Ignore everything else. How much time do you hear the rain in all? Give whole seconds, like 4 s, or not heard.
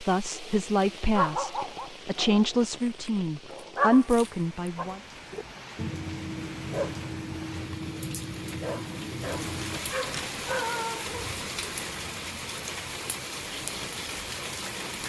15 s.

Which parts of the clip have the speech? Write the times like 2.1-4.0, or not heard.
0.0-5.0.